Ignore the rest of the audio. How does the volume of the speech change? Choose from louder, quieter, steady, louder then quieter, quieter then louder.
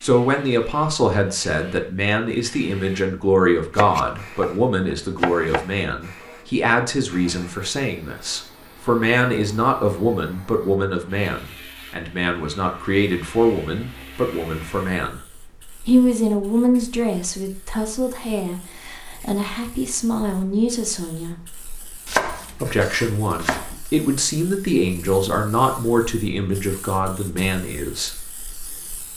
steady.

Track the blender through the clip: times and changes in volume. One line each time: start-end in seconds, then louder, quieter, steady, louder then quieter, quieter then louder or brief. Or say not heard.
not heard.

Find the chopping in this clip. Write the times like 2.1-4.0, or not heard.
3.8-5.7, 22.1-23.8.